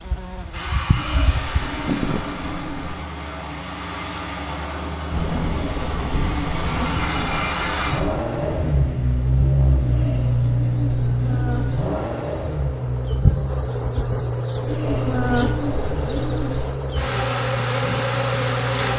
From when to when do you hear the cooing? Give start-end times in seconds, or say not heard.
0.9-3.0, 5.4-7.4, 9.8-11.8, 14.7-16.7.